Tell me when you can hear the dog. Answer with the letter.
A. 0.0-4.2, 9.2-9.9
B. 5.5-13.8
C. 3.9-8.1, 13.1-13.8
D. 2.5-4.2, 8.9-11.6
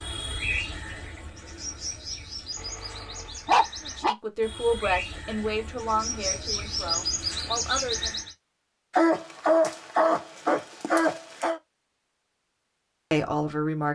D.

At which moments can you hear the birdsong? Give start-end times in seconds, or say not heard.
0.0-8.3.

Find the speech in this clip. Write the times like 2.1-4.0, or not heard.
3.9-8.1, 13.1-13.8.